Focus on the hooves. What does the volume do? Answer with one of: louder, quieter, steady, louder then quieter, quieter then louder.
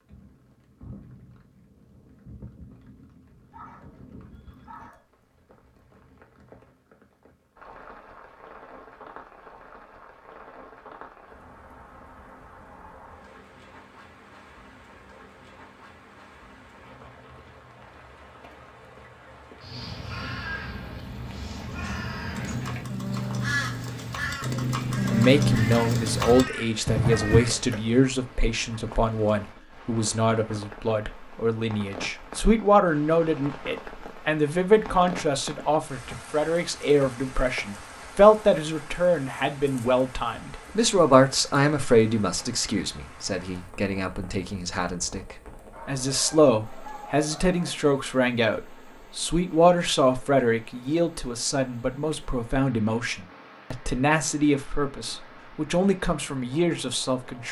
louder.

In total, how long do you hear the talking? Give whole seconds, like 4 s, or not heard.
32 s.